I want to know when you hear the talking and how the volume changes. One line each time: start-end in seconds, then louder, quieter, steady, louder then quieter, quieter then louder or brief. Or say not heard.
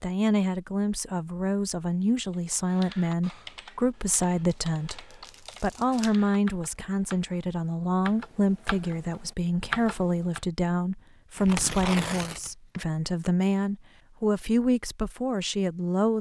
0.0-16.1 steady.